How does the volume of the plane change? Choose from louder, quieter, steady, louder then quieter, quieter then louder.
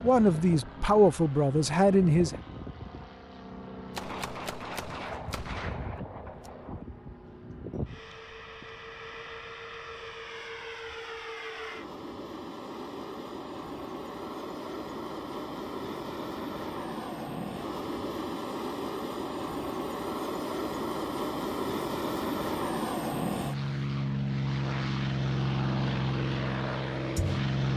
louder.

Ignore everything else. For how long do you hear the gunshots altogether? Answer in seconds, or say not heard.
3 s.